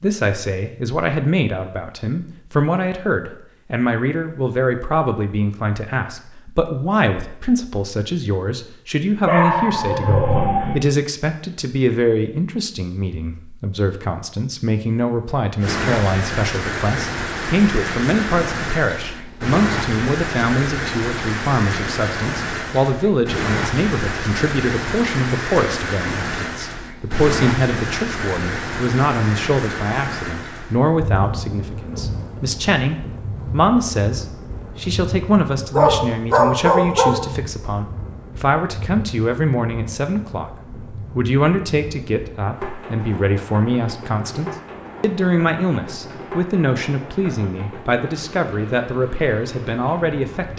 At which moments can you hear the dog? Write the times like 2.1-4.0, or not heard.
9.2-10.8, 35.7-37.1.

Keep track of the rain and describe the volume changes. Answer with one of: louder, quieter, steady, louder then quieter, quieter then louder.
quieter.